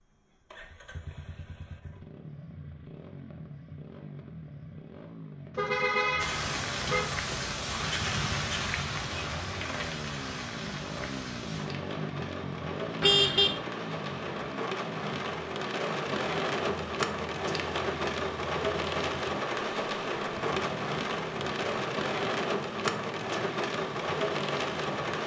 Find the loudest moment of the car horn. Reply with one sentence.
The loudest moment of the car horn is at 13 seconds.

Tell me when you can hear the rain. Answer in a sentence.
You can hear the rain from 6.2 to 25.2 s.